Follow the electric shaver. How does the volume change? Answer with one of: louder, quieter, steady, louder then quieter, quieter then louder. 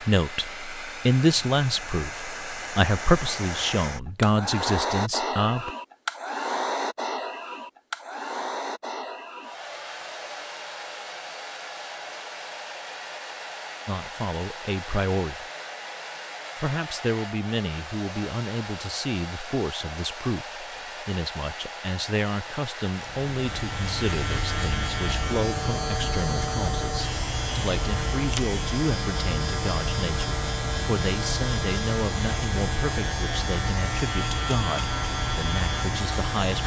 steady.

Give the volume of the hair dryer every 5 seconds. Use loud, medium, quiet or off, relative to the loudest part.
loud, loud, medium, medium, medium, medium, medium, medium.